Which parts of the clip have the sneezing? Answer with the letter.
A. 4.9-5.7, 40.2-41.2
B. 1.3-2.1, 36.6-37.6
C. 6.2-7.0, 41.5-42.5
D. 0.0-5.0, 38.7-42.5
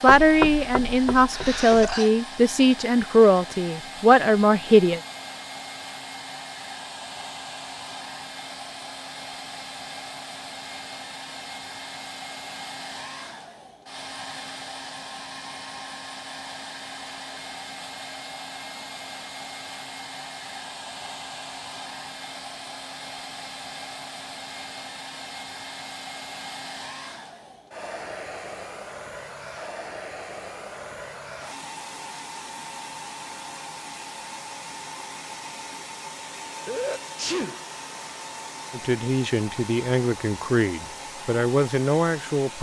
B.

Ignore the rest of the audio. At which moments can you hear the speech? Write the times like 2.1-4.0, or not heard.
0.0-5.0, 38.7-42.5.